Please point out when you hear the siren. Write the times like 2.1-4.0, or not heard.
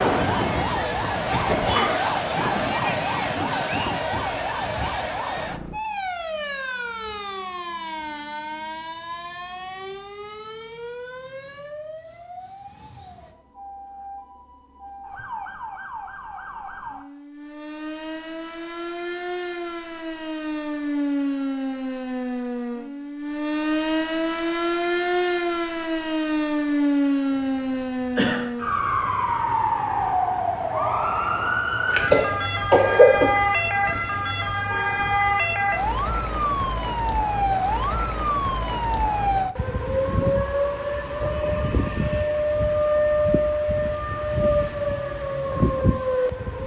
0.0-46.6.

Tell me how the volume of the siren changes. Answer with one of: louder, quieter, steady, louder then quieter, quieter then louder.
quieter then louder.